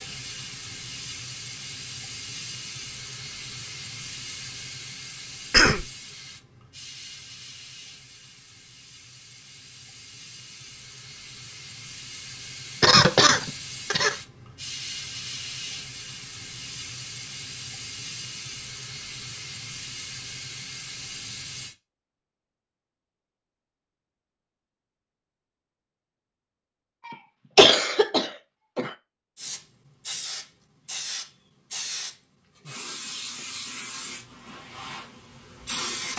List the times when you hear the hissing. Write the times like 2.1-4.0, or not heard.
0.0-21.8, 29.4-36.1.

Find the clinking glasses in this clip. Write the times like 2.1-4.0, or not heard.
not heard.